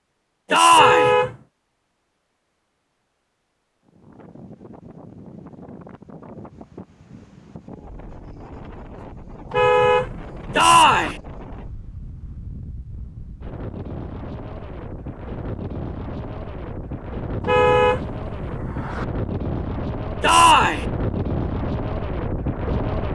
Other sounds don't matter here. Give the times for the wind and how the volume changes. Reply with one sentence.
The wind can be heard from 3.9 to 23.1 s, getting louder.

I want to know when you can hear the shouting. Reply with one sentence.
The shouting can be heard from 0.5 to 1.1 s, from 10.6 to 11.2 s and from 20.2 to 20.9 s.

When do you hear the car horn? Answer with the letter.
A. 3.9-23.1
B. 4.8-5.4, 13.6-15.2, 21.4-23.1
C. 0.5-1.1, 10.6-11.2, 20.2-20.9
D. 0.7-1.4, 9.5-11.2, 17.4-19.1
D.